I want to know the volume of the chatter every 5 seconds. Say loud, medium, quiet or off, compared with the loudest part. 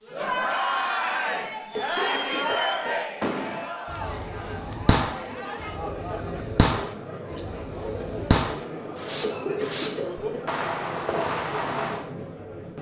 loud, medium, medium.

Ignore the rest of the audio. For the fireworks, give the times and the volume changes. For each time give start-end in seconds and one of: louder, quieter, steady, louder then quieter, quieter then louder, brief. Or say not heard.
1.6-12.1 steady.